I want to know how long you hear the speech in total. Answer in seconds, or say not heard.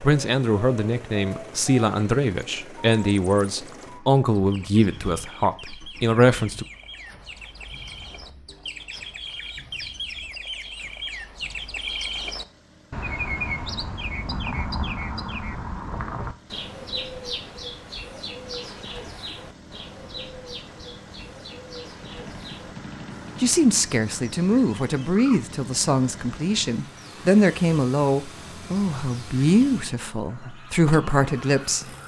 15 s.